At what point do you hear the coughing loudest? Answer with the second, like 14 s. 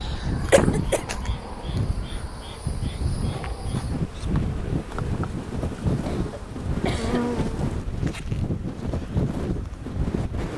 1 s.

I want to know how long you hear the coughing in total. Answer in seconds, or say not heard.
2 s.